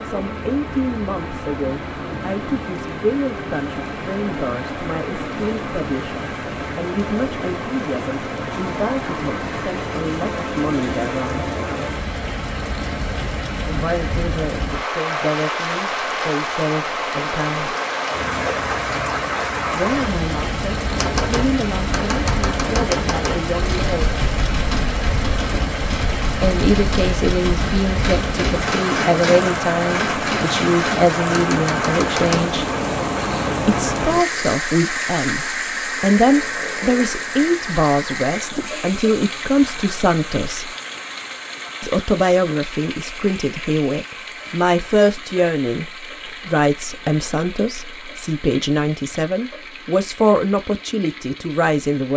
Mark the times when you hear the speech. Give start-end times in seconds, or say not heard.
0.0-11.5, 13.7-17.8, 19.7-24.1, 26.4-32.6, 33.6-40.7, 41.8-52.1.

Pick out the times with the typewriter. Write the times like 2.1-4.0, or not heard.
20.9-32.5.